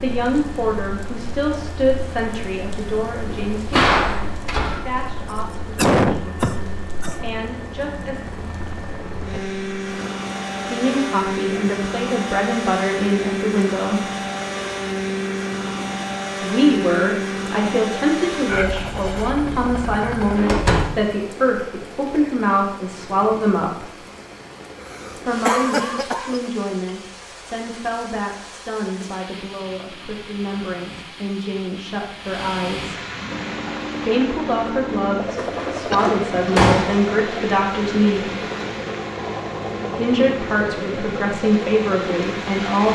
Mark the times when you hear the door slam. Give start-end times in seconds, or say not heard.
3.5-4.8, 20.4-21.1, 35.4-37.0.